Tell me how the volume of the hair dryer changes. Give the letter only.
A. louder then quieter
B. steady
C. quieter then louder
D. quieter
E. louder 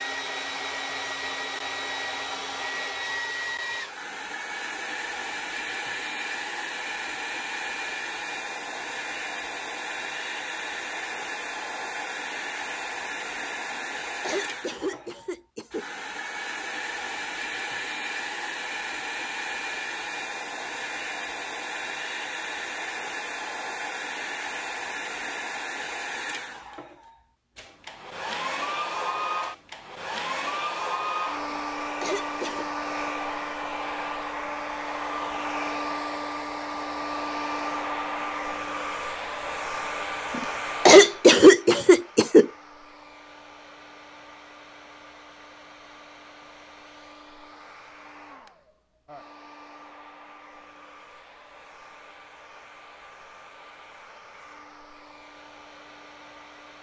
D.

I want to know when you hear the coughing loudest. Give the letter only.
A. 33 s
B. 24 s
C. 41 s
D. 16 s
C.